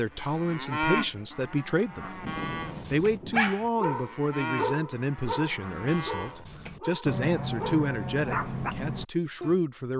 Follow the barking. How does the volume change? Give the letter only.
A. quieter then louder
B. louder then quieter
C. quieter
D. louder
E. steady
A.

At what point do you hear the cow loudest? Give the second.
1 s.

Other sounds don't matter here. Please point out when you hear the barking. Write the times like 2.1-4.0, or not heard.
2.8-8.8.